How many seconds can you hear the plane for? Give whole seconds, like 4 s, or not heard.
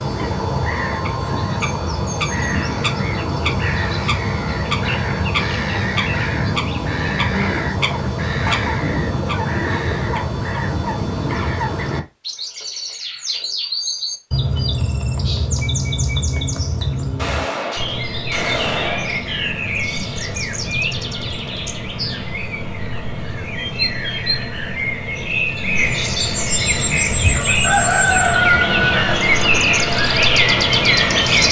5 s.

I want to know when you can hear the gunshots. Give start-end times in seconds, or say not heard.
17.1-19.2.